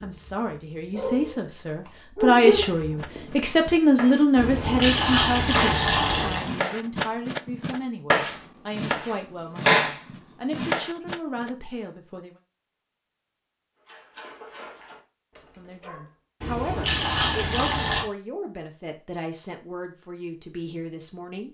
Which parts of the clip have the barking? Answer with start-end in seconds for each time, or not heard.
0.0-3.2, 13.8-16.1.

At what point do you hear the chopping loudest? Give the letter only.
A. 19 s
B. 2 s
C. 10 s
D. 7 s
C.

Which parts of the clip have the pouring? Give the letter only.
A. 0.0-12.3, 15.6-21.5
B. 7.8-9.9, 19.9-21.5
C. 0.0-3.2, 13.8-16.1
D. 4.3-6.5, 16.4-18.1
D.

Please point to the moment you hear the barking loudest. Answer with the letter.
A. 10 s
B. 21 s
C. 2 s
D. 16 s
C.